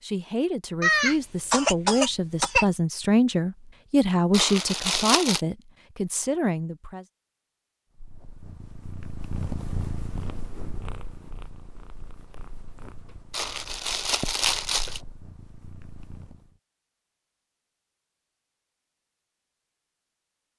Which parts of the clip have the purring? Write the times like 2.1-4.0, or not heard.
8.0-16.6.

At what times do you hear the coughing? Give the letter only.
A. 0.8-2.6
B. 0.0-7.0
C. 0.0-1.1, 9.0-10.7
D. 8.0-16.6
A.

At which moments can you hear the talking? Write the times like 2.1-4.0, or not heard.
0.0-7.0.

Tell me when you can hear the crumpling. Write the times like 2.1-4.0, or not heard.
4.3-5.4, 13.3-15.0.